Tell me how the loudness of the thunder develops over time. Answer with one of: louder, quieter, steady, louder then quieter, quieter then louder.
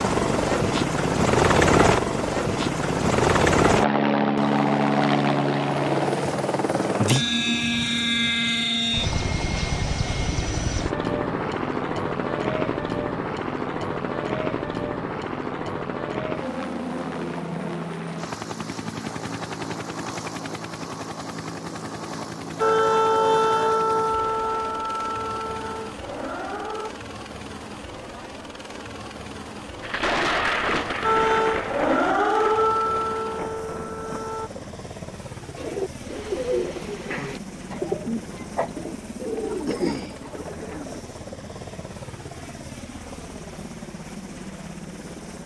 quieter.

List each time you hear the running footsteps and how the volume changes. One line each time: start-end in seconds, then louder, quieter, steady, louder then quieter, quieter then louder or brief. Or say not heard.
not heard.